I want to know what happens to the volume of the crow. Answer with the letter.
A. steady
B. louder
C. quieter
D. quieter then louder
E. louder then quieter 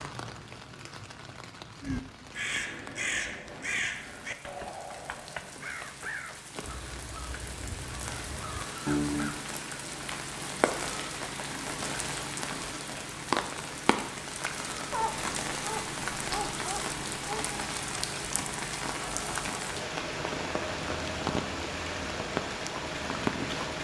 D.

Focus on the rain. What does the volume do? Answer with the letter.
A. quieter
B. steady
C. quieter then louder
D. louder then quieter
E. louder
E.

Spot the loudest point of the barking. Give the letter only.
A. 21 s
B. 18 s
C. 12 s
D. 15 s
D.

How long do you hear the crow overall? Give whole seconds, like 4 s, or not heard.
8 s.